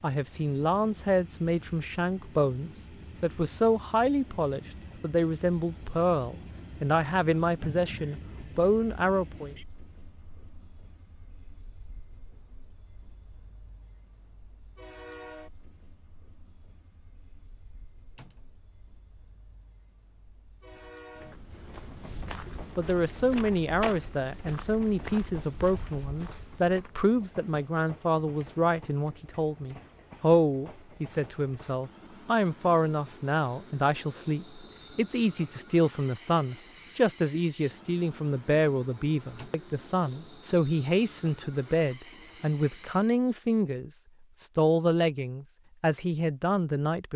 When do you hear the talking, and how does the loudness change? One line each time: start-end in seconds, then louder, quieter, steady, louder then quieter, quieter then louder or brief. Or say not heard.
0.0-9.6 steady
22.8-47.1 steady.